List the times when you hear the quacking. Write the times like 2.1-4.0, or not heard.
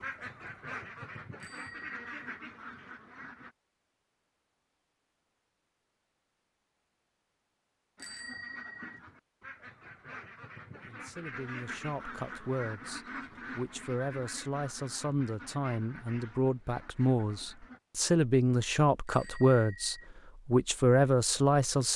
0.0-3.5, 8.0-17.8.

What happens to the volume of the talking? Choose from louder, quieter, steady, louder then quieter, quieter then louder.
louder.